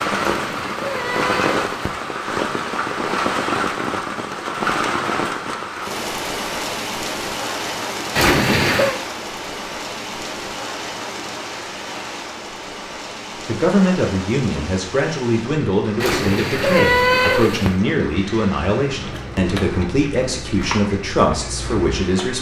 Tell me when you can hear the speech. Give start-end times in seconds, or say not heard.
13.4-22.3.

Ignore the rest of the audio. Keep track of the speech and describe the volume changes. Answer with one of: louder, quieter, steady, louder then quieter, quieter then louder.
steady.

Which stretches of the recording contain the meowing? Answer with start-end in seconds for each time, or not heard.
0.1-2.0, 8.2-8.9, 16.0-17.8.